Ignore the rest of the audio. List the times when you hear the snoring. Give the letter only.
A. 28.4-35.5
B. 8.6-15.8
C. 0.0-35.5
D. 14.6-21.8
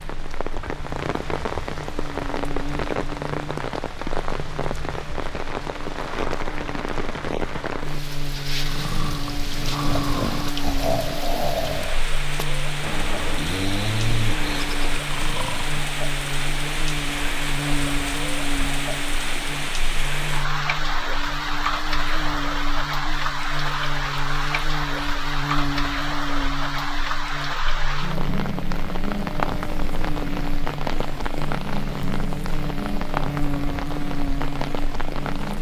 B.